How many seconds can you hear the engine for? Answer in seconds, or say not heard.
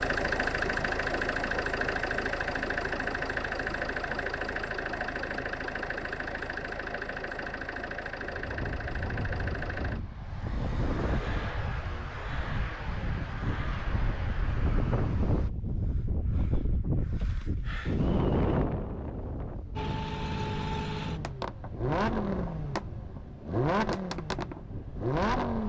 21 s.